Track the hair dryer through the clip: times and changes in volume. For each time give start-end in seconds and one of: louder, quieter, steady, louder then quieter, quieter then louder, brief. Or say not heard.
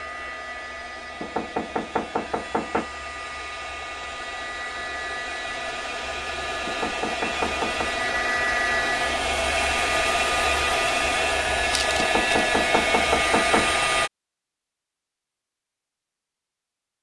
0.0-14.1 louder.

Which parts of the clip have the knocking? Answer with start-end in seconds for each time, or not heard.
1.2-2.9, 6.7-8.1, 11.9-13.8.